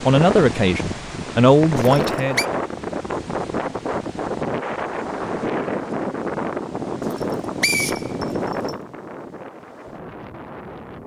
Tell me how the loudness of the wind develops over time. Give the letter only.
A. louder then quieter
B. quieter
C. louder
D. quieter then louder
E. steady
B.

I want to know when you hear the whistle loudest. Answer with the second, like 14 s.
8 s.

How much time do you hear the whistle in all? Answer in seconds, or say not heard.
2 s.